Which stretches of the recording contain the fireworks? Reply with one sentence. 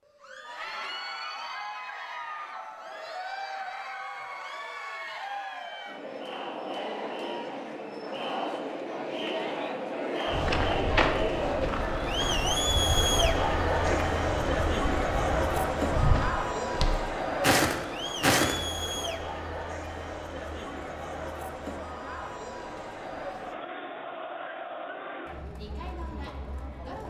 You can't hear the fireworks here.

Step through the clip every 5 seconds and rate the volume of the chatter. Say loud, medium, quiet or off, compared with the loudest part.
medium, medium, loud, loud, medium, quiet.